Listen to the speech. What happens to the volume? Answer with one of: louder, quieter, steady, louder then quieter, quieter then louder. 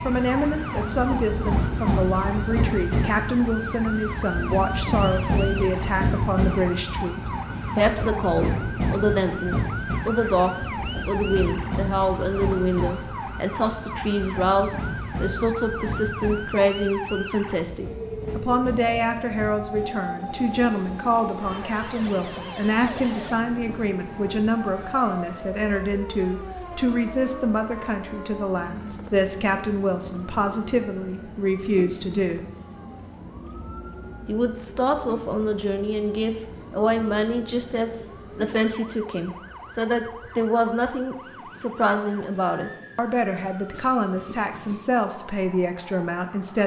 steady.